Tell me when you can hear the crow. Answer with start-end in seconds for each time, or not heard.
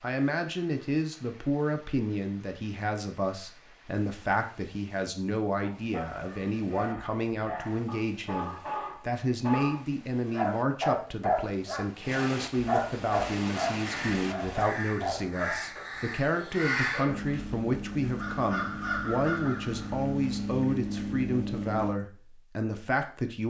13.8-21.9.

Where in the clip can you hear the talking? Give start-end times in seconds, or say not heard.
0.0-23.4.